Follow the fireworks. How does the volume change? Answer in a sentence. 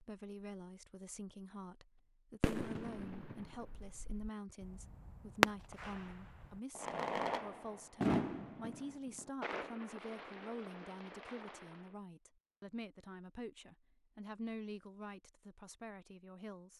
The volume of the fireworks goes up, then down.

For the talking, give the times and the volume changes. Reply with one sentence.
You can hear the talking from 0.0 to 16.7 s, at a steady volume.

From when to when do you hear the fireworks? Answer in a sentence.
The fireworks can be heard from 2.4 to 11.9 s.